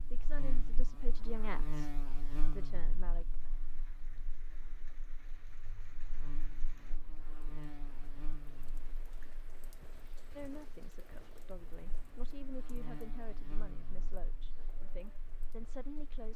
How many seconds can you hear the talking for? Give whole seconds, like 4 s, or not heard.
9 s.